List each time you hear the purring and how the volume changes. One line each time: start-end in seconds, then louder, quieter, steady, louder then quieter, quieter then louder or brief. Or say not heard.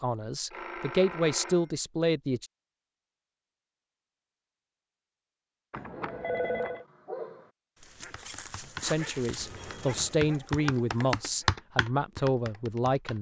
not heard.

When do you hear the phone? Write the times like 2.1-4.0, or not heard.
0.5-1.8, 5.7-6.8, 9.3-10.2.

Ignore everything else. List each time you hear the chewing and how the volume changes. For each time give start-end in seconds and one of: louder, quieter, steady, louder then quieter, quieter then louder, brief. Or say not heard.
not heard.